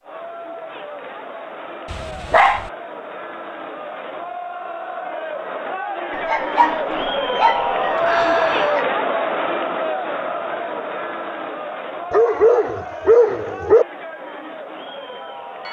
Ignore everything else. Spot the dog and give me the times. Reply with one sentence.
The dog can be heard from 1.9 to 2.7 s, from 6.1 to 8.8 s and from 12.1 to 13.8 s.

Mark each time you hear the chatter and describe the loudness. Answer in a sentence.
The chatter can be heard from 0.0 to 15.6 s, getting louder then quieter.